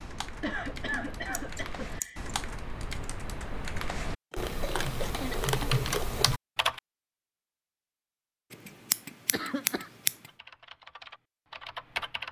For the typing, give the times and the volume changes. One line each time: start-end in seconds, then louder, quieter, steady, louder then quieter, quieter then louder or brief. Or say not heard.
0.0-6.8 louder
10.2-12.2 brief.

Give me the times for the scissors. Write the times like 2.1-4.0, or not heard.
0.8-2.3, 4.3-6.3, 8.5-10.2.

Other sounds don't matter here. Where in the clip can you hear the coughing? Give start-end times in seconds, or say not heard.
0.4-2.3, 4.6-5.8, 8.7-9.9.